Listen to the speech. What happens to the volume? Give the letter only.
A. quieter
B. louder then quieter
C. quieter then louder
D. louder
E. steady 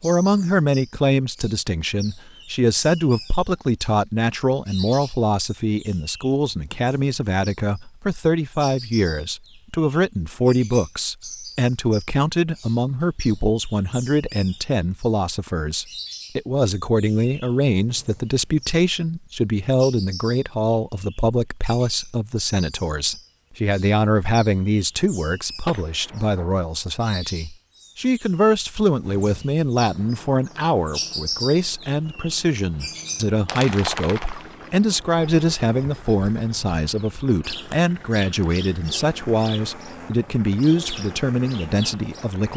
E.